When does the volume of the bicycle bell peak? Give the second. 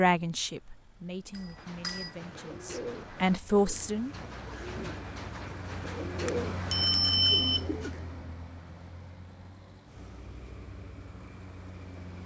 7 s.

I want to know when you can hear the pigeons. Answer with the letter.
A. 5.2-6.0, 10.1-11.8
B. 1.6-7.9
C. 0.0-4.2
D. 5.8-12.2
B.